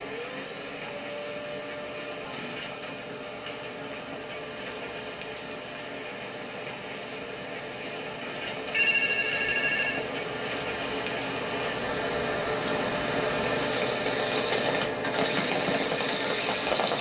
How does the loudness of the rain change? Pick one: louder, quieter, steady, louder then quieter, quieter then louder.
louder.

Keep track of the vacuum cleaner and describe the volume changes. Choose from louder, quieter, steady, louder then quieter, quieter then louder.
louder.